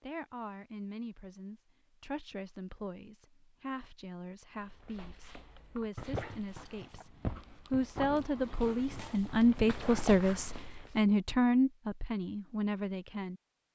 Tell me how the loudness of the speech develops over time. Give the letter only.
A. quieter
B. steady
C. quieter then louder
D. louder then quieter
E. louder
E.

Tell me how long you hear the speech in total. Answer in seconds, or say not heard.
13 s.